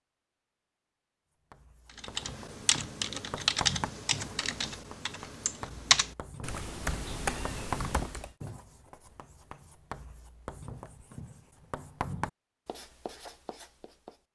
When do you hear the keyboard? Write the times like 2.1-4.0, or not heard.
1.9-8.3.